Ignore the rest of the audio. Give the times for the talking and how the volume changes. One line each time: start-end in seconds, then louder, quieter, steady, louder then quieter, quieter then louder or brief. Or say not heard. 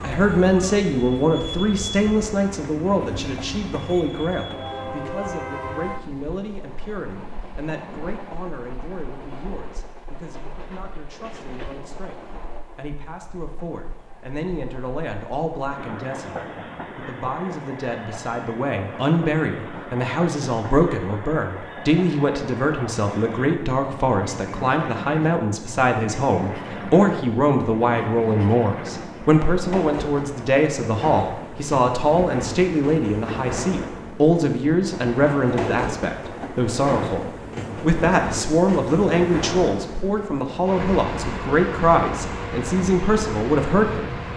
0.0-44.1 quieter then louder.